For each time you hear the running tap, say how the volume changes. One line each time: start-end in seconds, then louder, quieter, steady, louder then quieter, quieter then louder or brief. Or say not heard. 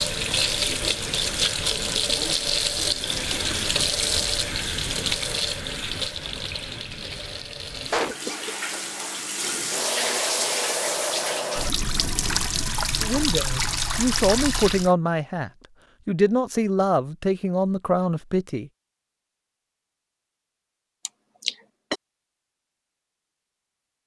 0.0-14.9 quieter then louder.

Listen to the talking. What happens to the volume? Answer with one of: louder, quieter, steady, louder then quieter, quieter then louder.
steady.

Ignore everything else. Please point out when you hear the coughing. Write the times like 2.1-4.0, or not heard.
7.9-8.6, 21.1-21.9.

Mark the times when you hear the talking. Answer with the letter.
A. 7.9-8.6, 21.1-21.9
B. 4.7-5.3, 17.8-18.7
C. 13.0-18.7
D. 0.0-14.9
C.